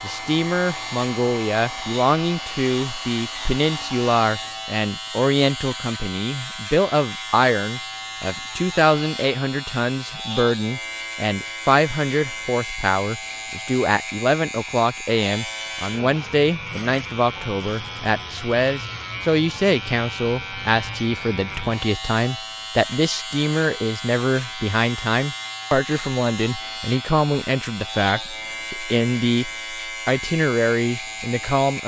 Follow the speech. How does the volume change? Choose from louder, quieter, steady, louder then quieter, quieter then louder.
steady.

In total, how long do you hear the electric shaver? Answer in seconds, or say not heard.
32 s.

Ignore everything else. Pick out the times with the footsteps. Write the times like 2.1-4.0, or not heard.
not heard.